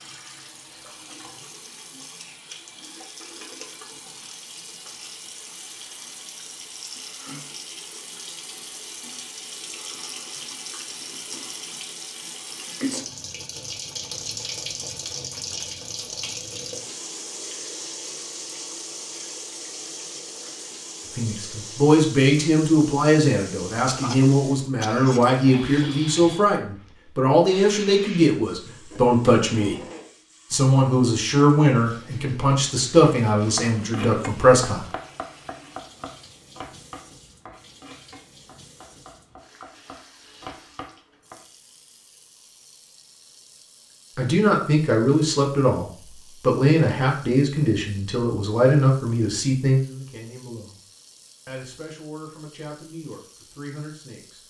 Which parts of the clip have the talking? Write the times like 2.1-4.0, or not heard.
21.1-29.8, 30.5-34.9, 44.1-50.8, 51.5-54.4.